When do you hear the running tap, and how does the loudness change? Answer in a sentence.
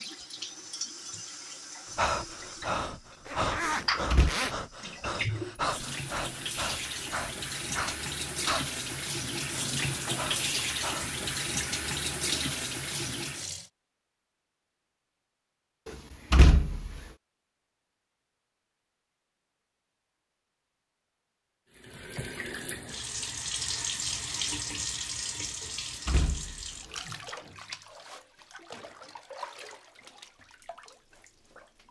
You can hear the running tap from 0.0 to 13.7 s, getting louder; and from 21.7 to 31.8 s, getting quieter.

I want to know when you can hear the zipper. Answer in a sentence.
The zipper can be heard from 3.2 to 4.5 s.